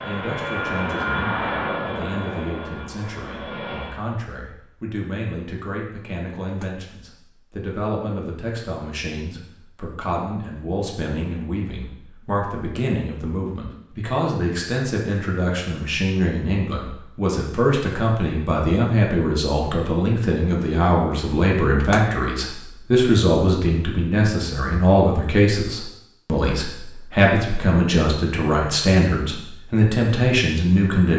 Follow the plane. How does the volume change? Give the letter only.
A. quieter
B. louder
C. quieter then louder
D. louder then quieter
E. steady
A.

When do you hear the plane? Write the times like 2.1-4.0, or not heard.
0.0-4.0.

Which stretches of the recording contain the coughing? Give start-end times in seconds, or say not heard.
not heard.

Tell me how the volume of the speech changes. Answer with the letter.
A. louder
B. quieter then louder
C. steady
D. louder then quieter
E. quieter
A.